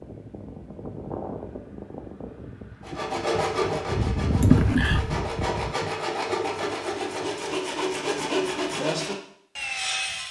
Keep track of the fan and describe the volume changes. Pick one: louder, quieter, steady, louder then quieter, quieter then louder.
quieter then louder.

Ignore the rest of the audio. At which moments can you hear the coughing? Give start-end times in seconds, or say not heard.
4.4-5.1.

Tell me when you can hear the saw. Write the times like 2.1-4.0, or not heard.
2.9-10.2.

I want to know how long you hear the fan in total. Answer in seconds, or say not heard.
6 s.